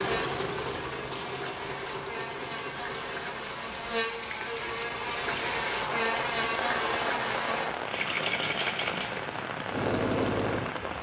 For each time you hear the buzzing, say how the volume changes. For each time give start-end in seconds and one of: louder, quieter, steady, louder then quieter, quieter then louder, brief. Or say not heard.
0.0-7.7 louder.